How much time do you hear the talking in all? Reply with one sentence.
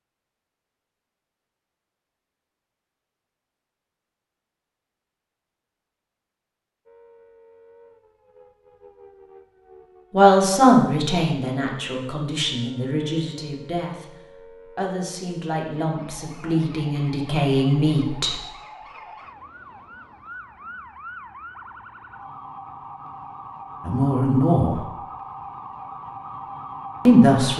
The talking can be heard for 9 seconds in total.